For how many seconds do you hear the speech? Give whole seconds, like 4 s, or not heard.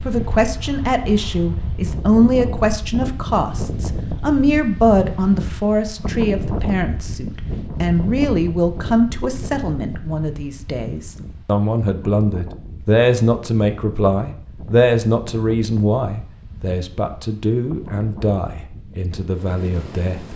20 s.